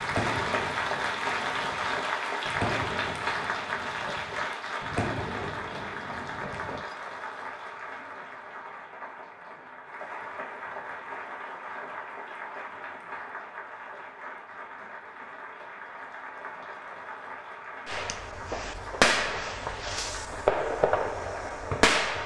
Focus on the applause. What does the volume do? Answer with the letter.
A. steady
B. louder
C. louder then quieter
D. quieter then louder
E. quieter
E.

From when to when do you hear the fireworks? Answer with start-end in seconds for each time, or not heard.
0.0-7.0, 17.9-22.2.